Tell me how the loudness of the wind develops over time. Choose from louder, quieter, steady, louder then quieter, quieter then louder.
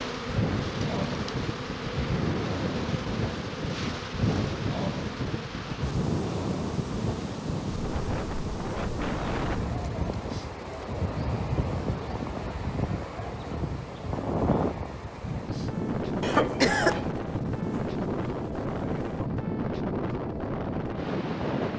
steady.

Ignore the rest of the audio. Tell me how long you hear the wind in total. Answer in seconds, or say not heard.
22 s.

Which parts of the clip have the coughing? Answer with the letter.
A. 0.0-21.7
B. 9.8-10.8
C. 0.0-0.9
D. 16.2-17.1
D.